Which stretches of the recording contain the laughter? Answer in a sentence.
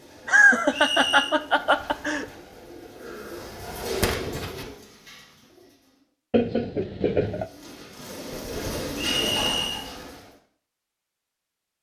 The laughter can be heard from 0.2 to 2.2 s and from 6.3 to 7.5 s.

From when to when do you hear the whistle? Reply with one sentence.
You can hear the whistle from 0.7 to 1.3 s and from 9.0 to 9.8 s.